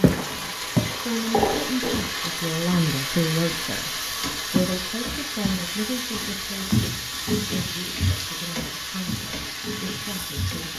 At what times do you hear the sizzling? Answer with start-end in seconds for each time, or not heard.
0.0-10.7.